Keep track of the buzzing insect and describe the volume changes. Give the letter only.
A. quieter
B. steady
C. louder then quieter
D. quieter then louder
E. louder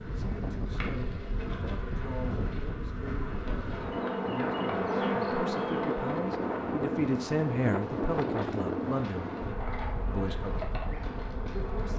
C.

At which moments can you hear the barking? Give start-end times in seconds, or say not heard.
not heard.